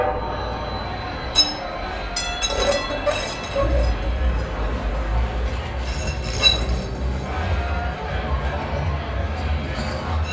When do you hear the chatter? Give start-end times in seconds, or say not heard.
0.1-10.2.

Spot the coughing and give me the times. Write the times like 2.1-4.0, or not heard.
not heard.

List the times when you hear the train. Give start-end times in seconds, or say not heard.
0.0-10.2.